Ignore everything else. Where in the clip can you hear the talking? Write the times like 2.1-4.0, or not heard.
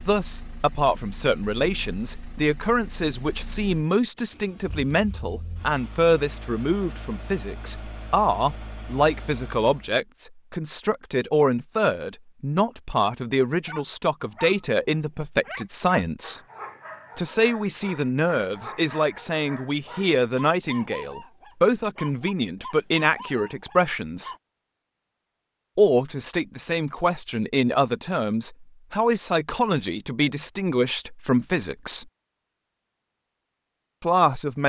0.1-16.4, 17.1-24.3, 25.8-32.0, 34.0-34.6.